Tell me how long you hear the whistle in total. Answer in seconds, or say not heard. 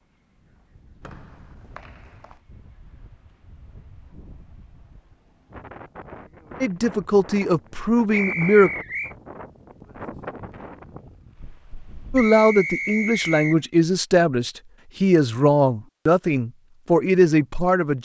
4 s.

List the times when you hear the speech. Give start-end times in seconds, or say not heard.
6.6-8.7, 12.1-18.0.